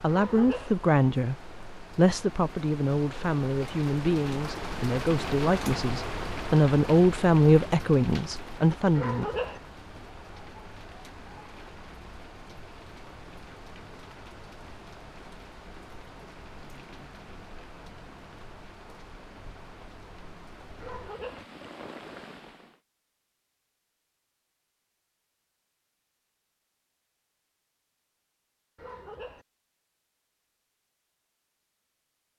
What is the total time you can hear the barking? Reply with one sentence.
You can hear the barking for 3 seconds altogether.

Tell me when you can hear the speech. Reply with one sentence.
You can hear the speech from 0.0 to 9.2 s.